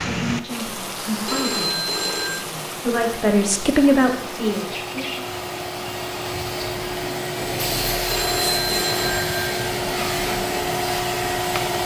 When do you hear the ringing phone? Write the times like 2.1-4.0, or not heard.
1.2-2.5, 8.1-9.4.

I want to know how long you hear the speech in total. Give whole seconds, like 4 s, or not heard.
5 s.